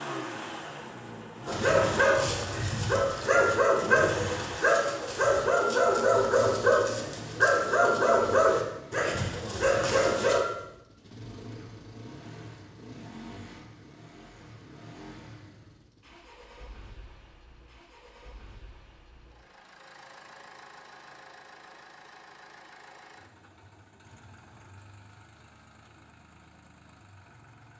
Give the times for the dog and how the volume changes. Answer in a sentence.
You can hear the dog from 1.4 to 10.4 s, at a steady volume.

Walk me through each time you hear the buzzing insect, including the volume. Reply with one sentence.
You can't hear the buzzing insect here.